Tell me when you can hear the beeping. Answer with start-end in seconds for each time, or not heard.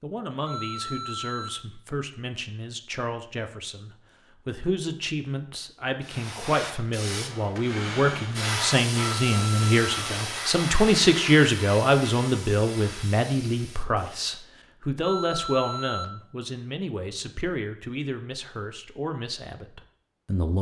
0.5-1.5, 9.2-9.8, 15.0-16.1.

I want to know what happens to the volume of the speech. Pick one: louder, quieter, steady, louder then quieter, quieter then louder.
louder then quieter.